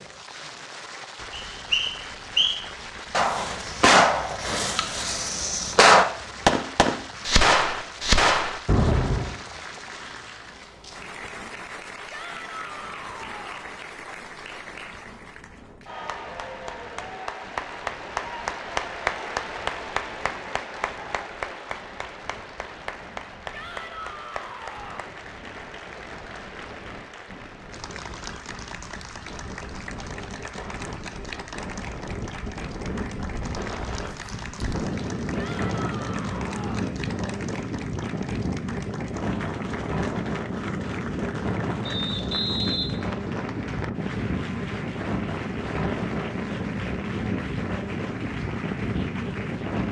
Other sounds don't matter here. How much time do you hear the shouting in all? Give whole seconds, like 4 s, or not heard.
5 s.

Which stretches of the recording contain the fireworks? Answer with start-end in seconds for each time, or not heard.
3.1-9.3.